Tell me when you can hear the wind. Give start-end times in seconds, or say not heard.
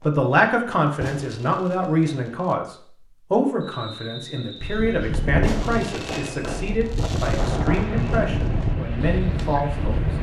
4.6-10.1.